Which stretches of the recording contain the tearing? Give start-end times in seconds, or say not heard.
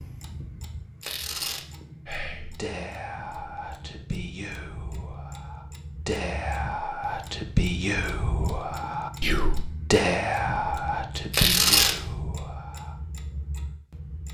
1.0-1.6, 11.3-11.9.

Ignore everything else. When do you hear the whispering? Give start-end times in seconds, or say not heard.
2.0-12.9.